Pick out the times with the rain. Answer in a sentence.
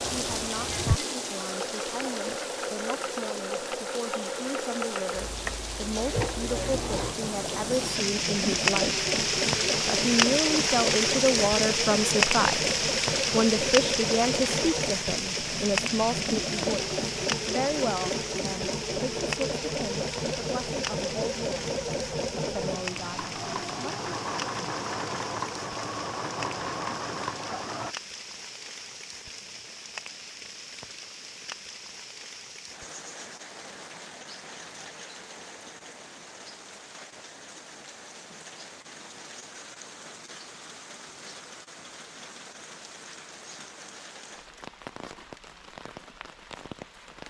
You can hear the rain from 0.0 to 47.2 s.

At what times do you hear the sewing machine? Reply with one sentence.
The sewing machine can be heard from 0.0 to 27.9 s.